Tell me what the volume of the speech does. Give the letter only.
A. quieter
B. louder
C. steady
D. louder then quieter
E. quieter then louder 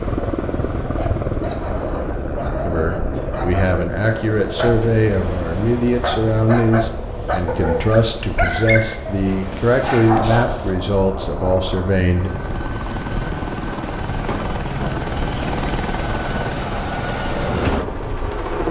C.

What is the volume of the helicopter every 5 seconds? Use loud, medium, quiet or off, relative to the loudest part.
loud, medium, loud, loud.